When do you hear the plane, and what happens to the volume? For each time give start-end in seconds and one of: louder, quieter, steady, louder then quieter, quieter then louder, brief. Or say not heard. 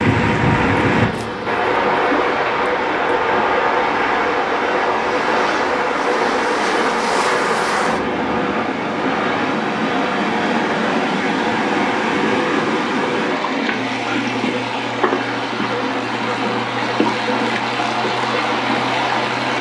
0.0-19.5 quieter.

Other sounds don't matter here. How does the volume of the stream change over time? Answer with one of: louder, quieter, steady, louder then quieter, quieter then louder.
steady.